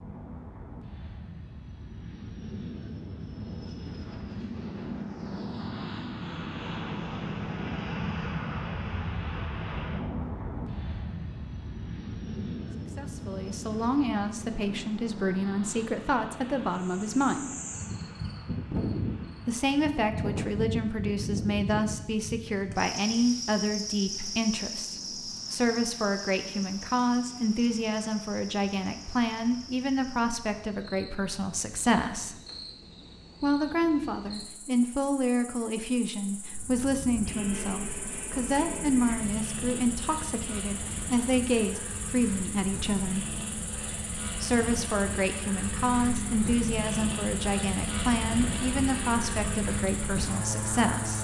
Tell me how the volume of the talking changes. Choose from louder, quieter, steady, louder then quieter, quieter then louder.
steady.